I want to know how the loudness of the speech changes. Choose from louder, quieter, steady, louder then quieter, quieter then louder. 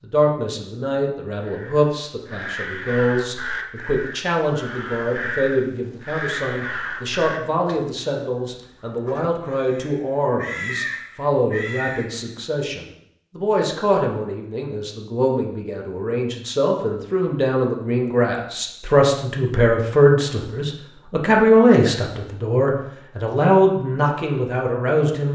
louder.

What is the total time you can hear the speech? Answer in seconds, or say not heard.
25 s.